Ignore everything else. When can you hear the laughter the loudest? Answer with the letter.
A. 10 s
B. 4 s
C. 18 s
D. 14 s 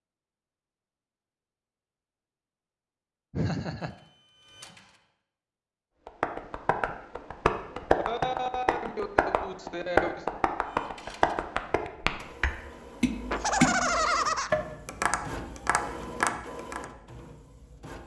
D.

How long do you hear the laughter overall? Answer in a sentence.
You can hear the laughter for 4 seconds altogether.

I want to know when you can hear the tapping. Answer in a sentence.
The tapping can be heard from 6.0 to 16.9 s.